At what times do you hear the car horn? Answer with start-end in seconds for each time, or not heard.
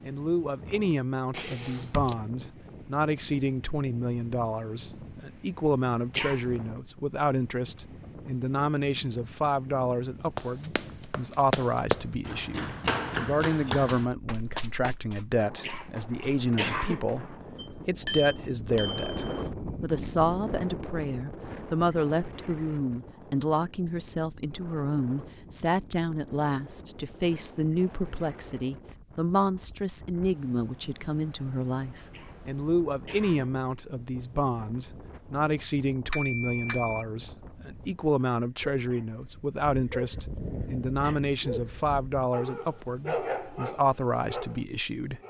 not heard.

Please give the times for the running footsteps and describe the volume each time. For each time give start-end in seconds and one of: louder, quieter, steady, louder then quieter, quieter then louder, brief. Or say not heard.
10.3-17.3 quieter.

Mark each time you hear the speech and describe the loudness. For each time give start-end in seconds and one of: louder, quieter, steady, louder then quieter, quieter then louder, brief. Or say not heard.
0.0-45.2 steady.